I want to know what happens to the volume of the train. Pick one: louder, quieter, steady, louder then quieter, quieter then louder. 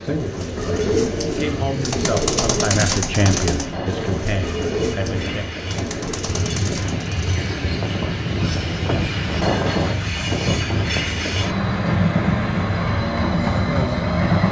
louder.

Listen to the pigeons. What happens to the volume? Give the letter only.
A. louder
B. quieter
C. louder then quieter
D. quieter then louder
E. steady
B.